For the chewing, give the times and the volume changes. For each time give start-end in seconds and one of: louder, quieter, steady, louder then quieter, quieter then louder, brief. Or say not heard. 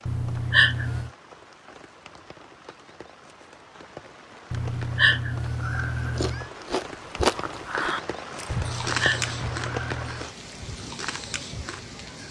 6.1-12.2 quieter then louder.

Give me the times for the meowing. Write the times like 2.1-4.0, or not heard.
0.1-1.1, 4.5-6.5, 8.5-10.3.